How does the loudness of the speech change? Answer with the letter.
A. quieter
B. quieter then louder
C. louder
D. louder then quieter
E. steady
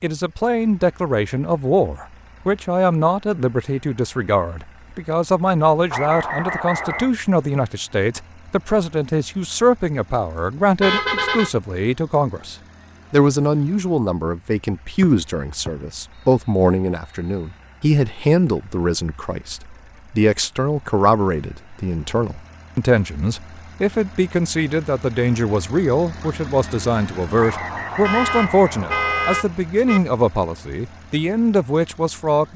E.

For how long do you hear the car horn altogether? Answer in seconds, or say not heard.
3 s.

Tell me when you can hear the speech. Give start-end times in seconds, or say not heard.
0.0-32.5.